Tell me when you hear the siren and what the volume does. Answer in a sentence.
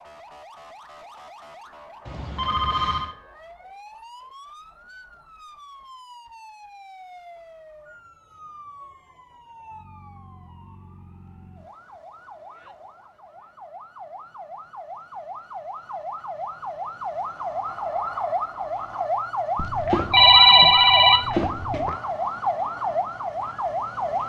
You can hear the siren from 0.0 to 24.2 s, getting louder.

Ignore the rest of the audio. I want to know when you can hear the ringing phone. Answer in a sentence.
You can hear the ringing phone from 2.0 to 3.1 s and from 19.6 to 21.9 s.